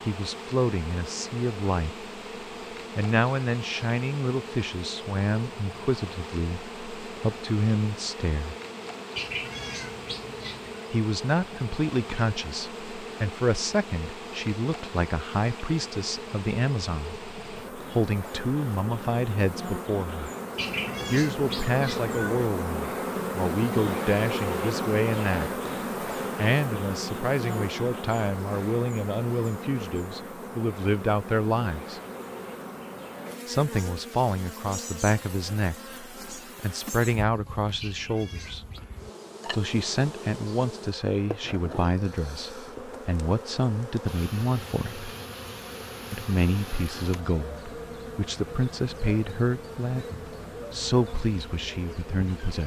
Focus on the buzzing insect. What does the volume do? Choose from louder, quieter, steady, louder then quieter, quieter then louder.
louder then quieter.